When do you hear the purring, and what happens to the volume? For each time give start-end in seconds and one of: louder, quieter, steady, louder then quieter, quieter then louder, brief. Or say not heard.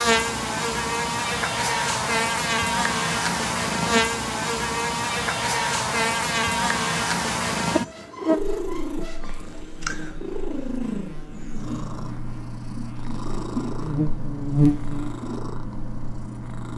0.0-16.7 steady.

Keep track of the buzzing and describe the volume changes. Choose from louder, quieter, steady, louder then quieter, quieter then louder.
quieter then louder.